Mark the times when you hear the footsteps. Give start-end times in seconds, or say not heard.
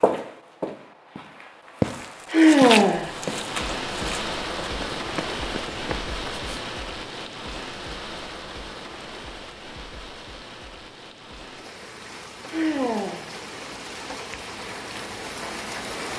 0.0-6.5.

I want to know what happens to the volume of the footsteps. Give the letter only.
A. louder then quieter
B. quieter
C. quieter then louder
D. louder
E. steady
A.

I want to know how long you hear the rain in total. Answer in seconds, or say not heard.
13 s.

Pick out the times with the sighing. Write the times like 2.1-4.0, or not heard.
2.2-3.1, 12.4-13.3.